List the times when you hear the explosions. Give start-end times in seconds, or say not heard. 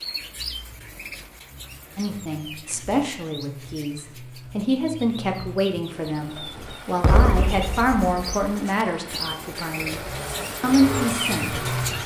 7.0-8.3.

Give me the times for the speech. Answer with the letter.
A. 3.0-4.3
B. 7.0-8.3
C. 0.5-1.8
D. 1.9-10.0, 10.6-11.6
D.